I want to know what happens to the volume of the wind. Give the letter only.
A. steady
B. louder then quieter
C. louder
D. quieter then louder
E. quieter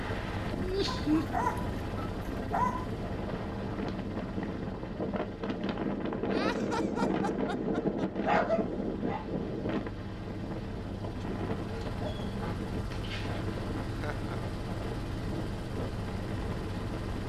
B.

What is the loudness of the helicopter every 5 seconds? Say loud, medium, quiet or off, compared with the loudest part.
loud, medium, loud, loud.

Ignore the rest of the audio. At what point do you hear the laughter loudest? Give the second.
1 s.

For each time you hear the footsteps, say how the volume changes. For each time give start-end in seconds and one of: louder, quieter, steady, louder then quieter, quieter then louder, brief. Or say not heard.
not heard.